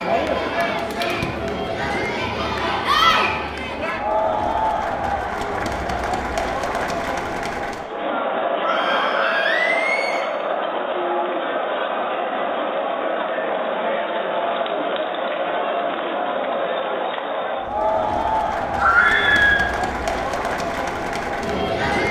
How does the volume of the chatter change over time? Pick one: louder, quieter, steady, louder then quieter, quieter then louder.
steady.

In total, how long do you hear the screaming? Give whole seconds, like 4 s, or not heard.
3 s.